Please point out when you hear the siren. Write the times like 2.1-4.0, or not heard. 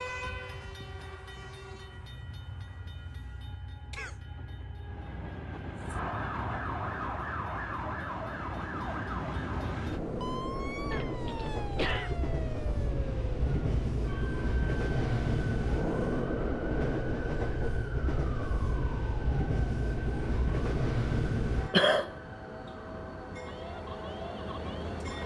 5.8-25.2.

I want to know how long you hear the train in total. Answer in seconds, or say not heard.
25 s.